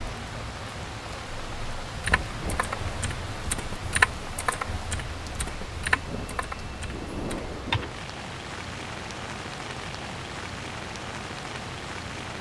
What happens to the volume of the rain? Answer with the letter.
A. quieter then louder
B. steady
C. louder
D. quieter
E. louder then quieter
B.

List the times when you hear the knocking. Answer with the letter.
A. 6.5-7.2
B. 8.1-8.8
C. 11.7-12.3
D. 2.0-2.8
D.